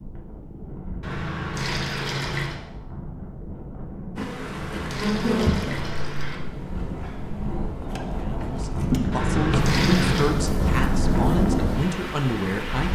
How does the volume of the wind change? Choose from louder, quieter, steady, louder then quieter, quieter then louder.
louder.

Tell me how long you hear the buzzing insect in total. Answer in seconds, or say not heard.
9 s.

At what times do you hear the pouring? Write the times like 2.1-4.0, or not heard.
1.0-2.6, 4.3-6.4, 9.1-10.3.